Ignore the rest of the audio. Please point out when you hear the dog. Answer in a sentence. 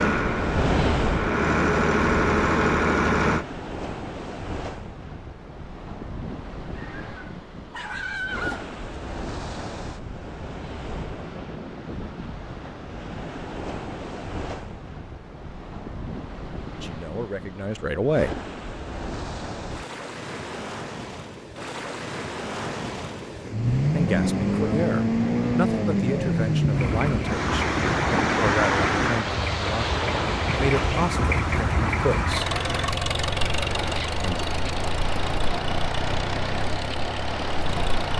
You can hear the dog from 6.8 to 8.8 s.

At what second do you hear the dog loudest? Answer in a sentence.
The volume of the dog peaks at 8 seconds.